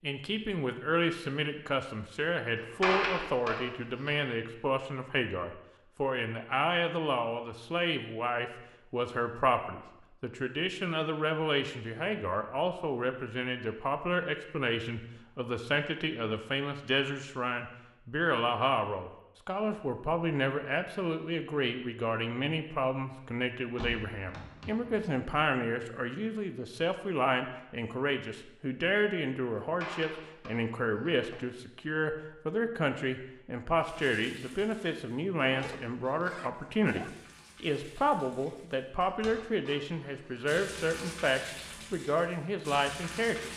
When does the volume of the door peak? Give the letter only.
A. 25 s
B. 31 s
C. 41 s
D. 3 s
D.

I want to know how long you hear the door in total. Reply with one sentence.
You can hear the door for 5 seconds altogether.